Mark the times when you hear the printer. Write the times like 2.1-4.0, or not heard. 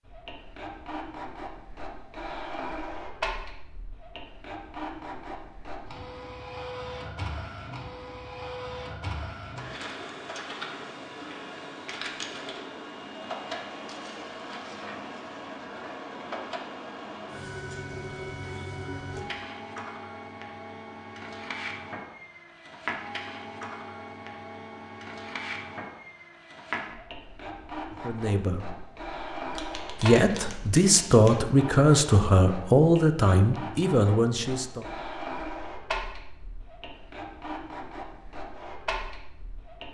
0.0-39.8.